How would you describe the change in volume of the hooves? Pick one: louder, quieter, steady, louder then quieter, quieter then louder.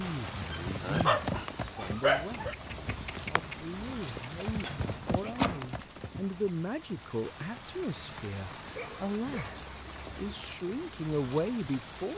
quieter then louder.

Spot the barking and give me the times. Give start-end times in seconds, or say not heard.
0.7-2.5, 4.6-6.2, 8.7-10.2.